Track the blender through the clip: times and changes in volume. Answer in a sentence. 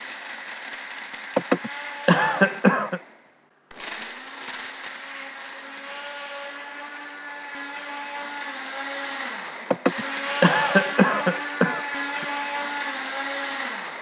You can hear the blender from 0.0 to 13.9 s, getting louder.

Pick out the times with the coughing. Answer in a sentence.
You can hear the coughing from 1.4 to 3.0 s and from 9.7 to 12.2 s.